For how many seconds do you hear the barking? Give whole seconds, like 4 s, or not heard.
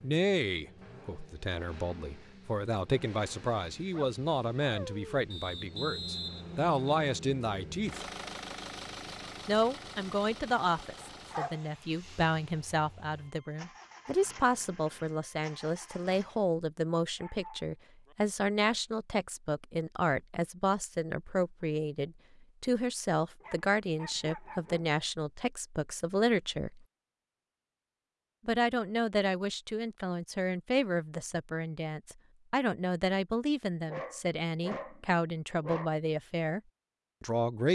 7 s.